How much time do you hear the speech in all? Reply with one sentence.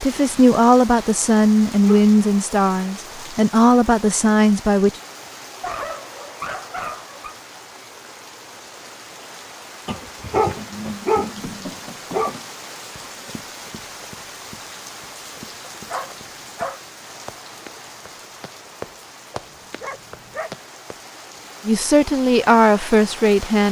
The speech can be heard for 7 seconds in total.